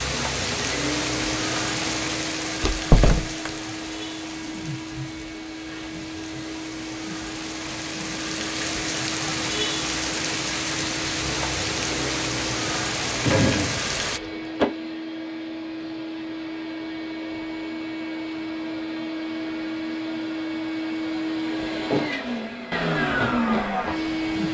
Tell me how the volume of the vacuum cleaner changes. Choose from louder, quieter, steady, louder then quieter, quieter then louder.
louder.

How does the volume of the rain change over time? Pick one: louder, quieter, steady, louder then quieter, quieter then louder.
quieter then louder.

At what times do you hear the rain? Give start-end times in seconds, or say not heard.
0.0-14.2.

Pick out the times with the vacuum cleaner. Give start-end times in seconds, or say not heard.
0.1-24.4.